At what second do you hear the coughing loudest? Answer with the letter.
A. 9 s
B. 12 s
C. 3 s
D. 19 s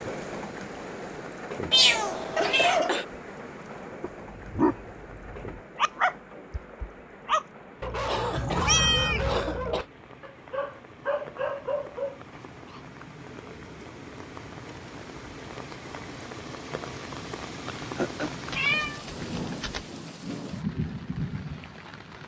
C.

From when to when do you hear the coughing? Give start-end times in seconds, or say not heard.
2.4-3.0, 8.1-9.8, 17.8-18.3.